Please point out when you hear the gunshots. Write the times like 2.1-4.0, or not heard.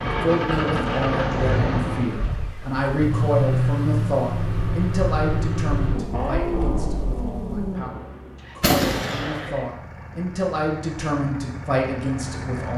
8.6-9.5.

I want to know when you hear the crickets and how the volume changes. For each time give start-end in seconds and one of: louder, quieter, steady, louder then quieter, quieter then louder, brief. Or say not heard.
not heard.